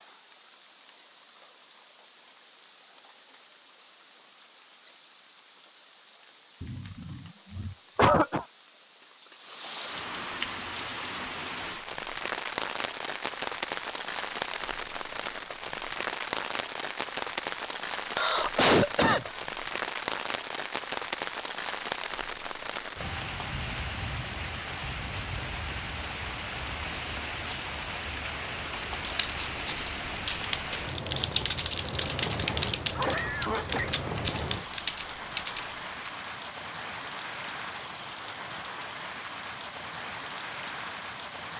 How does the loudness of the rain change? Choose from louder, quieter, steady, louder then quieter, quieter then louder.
louder.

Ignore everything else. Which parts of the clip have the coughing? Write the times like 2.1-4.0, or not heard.
6.6-8.4, 18.1-19.4, 32.8-34.0.